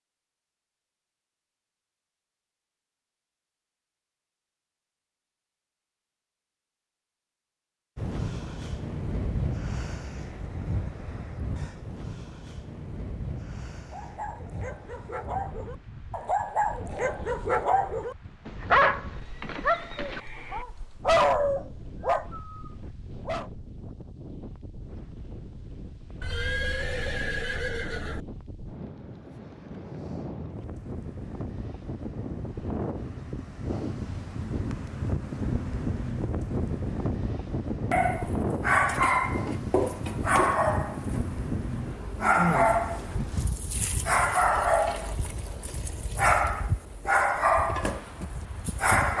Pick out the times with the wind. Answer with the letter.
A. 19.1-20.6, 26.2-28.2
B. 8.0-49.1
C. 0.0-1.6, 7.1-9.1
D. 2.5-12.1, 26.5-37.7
B.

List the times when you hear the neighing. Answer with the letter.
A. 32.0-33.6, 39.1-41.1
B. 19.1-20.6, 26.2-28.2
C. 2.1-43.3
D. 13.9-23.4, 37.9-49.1
B.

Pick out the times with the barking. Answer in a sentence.
You can hear the barking from 13.9 to 23.4 s and from 37.9 to 49.1 s.